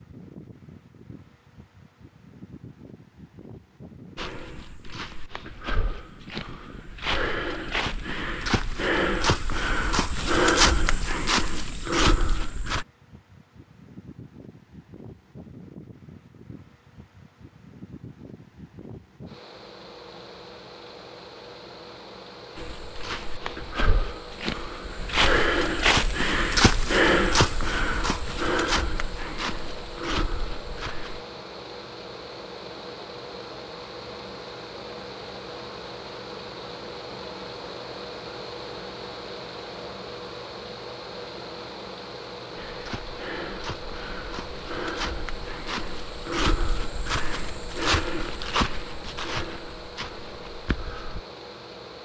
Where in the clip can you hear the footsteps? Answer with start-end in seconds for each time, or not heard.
4.2-12.8, 22.6-31.2, 42.5-51.2.